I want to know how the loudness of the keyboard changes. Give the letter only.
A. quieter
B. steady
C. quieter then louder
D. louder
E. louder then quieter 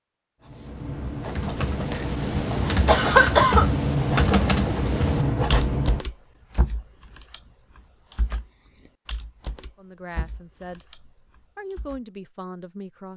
A.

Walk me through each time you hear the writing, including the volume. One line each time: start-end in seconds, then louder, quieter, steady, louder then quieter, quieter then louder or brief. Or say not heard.
0.4-6.0 louder.